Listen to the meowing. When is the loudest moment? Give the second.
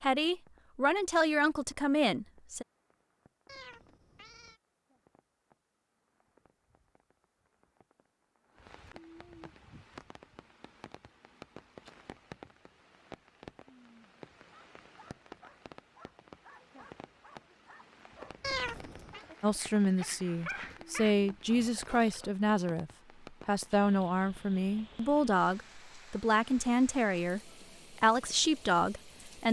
19 s.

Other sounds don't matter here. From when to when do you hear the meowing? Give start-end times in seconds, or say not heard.
3.5-4.6, 18.4-19.2.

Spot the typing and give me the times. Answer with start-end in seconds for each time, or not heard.
not heard.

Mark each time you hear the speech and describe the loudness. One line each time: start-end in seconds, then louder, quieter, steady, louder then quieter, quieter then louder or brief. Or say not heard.
0.0-2.6 brief
19.4-29.4 steady.